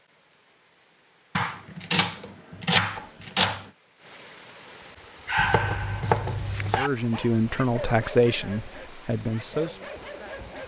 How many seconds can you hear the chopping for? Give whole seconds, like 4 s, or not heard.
4 s.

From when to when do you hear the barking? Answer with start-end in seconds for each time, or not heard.
5.2-10.6.